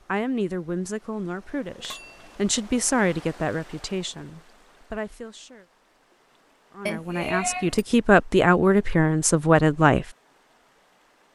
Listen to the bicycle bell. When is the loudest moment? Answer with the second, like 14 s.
7 s.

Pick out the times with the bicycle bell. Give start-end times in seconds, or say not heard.
1.8-2.4, 6.8-7.8.